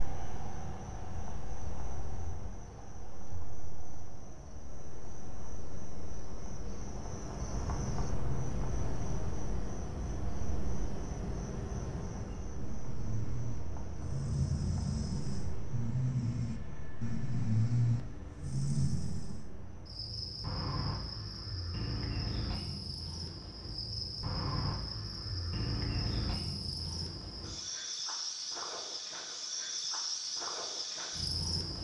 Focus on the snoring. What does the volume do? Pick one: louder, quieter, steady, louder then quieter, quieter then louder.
louder.